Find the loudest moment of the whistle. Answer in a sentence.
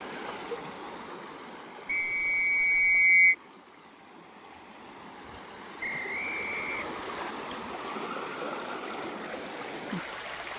The volume of the whistle peaks at 3 seconds.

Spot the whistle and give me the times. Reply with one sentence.
You can hear the whistle from 1.9 to 3.4 s and from 5.8 to 7.3 s.